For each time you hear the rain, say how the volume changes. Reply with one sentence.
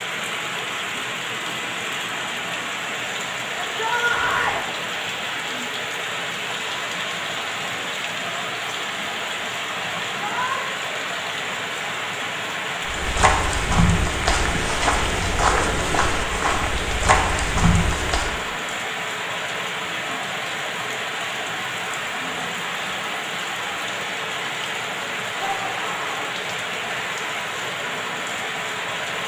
You can hear the rain from 0.0 to 29.2 s, at a steady volume.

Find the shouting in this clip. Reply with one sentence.
The shouting can be heard from 3.6 to 4.6 s, from 10.1 to 10.6 s and from 25.4 to 26.2 s.